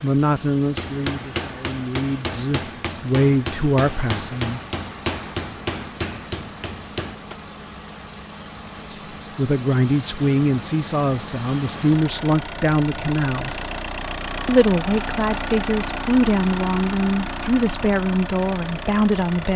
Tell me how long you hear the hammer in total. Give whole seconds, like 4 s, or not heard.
7 s.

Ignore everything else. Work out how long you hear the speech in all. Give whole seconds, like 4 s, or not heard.
14 s.